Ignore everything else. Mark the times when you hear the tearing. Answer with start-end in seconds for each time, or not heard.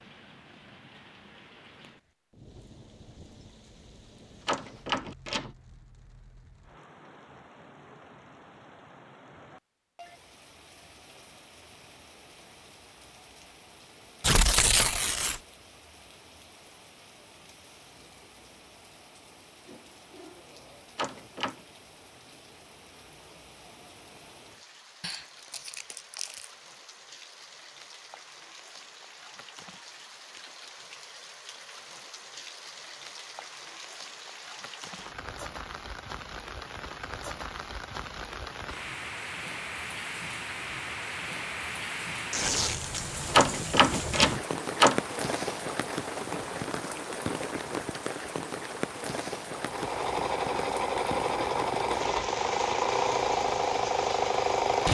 14.2-15.4, 25.0-26.4, 42.3-43.0.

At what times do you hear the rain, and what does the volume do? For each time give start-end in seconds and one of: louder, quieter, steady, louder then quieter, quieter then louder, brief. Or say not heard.
0.0-54.8 louder.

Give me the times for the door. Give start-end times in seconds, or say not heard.
4.5-5.5, 20.9-21.6, 43.3-45.0.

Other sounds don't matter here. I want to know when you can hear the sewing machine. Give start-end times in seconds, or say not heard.
49.5-54.8.